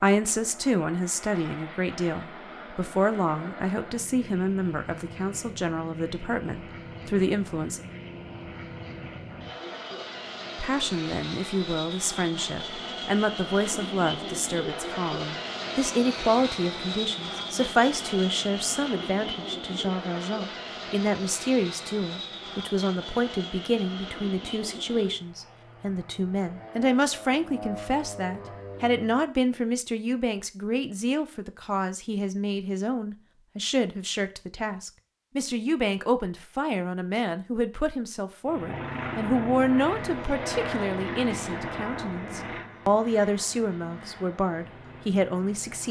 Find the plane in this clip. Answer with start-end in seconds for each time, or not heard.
0.0-29.2, 38.5-45.8.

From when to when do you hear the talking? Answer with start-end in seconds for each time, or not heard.
0.0-7.8, 10.6-45.8.